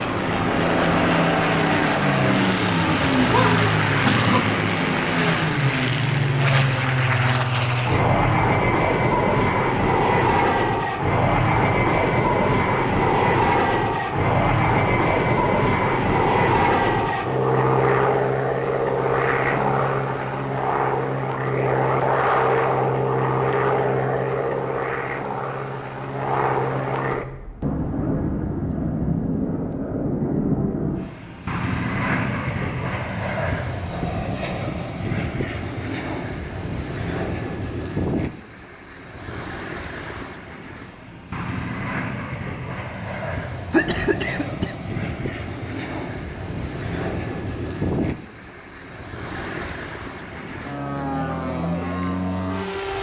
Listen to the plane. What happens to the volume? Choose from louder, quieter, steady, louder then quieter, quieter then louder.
quieter.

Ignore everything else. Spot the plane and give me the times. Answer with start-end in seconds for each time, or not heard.
0.0-52.9.